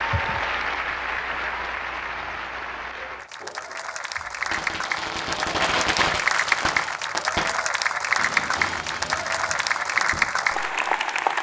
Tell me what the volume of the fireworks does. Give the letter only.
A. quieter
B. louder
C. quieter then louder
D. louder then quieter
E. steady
D.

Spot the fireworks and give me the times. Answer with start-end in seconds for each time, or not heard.
3.4-10.9.